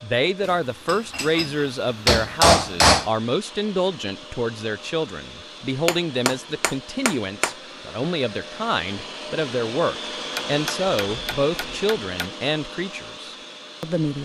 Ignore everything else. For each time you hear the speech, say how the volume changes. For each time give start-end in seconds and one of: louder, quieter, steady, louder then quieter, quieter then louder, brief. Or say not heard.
0.0-14.1 steady.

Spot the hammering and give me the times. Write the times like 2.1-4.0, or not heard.
0.4-3.1, 5.8-7.5, 10.3-12.2.